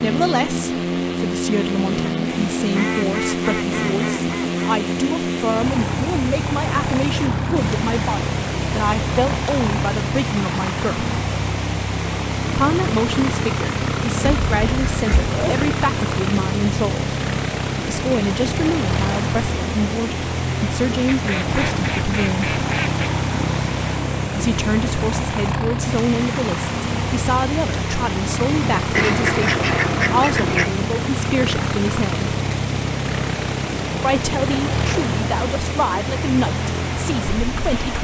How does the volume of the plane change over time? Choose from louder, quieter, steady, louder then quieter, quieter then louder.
steady.